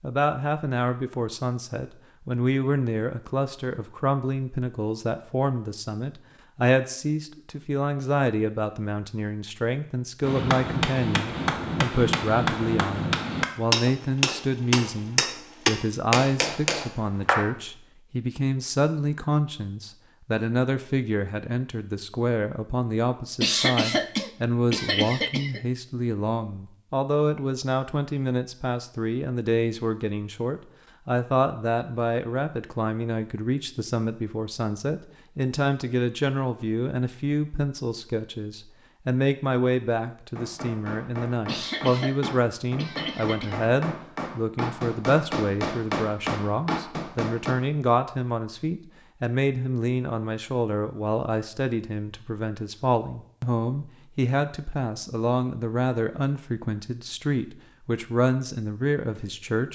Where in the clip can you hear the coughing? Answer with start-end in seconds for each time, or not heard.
23.4-25.6, 41.5-43.7.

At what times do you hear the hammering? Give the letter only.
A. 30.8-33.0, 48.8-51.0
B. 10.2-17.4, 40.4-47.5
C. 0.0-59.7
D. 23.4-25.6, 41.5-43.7
B.